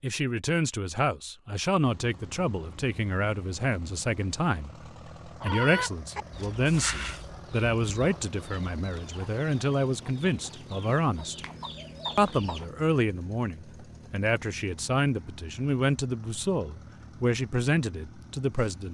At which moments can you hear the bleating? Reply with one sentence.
The bleating can't be heard in this clip.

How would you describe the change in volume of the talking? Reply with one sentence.
The loudness of the talking stays about the same.